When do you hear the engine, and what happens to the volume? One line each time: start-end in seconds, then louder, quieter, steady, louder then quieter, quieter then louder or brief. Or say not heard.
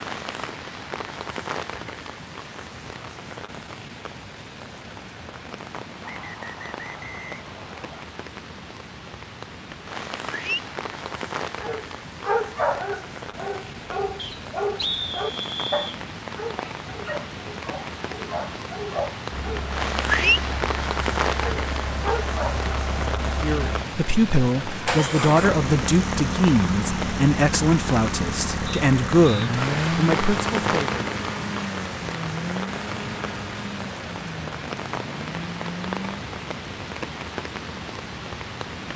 19.3-36.2 louder then quieter.